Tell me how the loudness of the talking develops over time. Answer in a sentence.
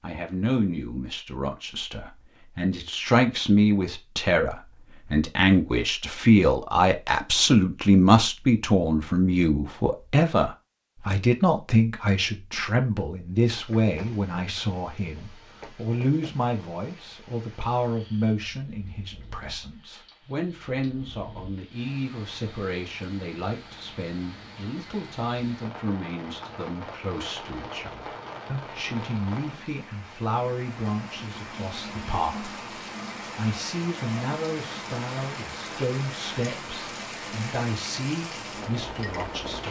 The loudness of the talking goes down.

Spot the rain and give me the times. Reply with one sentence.
You can hear the rain from 13.4 to 39.6 s.